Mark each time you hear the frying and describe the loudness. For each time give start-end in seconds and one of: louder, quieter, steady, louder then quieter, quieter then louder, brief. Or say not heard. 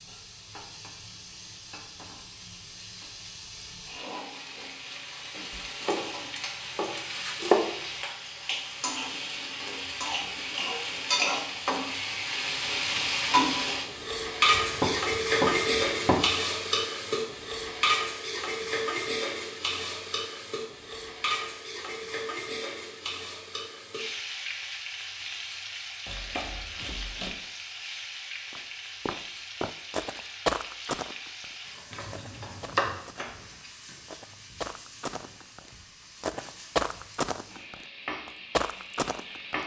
0.0-39.6 louder then quieter.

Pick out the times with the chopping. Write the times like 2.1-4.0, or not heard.
5.8-7.5, 14.5-16.2, 26.1-27.3, 31.9-33.0.